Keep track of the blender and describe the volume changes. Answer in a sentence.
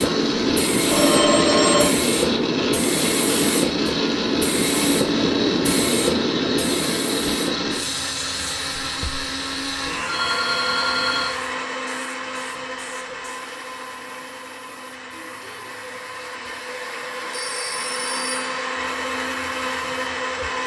The volume of the blender goes down, then up.